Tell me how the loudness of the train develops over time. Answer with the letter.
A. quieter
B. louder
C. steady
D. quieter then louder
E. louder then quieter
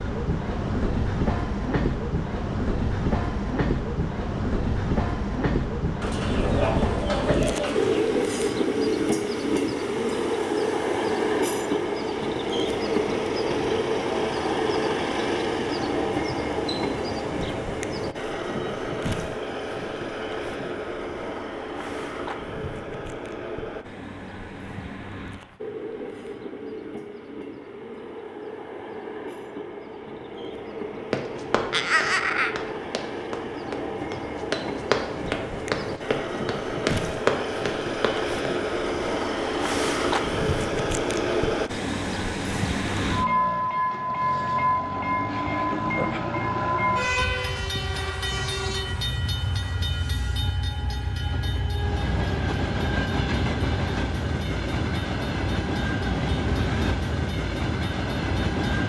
D.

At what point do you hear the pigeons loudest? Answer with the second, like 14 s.
7 s.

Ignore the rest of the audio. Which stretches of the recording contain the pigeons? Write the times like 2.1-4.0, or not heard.
6.0-8.1.